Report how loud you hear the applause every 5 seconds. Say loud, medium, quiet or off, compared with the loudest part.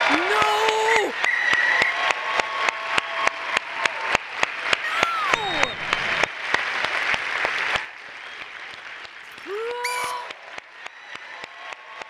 loud, loud, quiet.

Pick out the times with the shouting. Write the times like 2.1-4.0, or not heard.
0.1-1.1, 4.8-5.8, 9.4-10.3.